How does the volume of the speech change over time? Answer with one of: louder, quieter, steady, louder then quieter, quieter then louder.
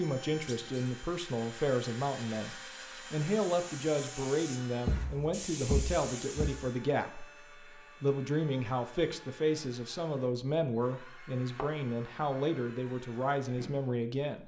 steady.